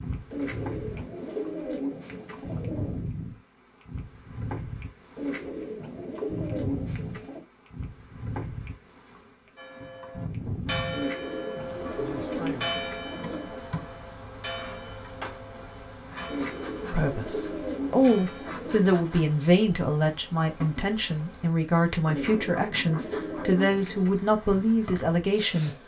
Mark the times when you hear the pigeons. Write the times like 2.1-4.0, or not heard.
0.3-3.1, 5.2-7.5, 10.9-13.5, 16.2-18.9, 22.1-24.1.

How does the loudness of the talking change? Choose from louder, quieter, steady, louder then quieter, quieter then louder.
steady.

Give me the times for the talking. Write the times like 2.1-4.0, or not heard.
16.9-25.7.